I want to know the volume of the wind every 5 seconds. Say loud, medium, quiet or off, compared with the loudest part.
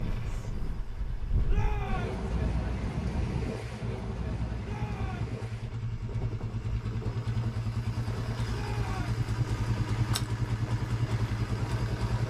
loud, medium, medium.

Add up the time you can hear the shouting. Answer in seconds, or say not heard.
2 s.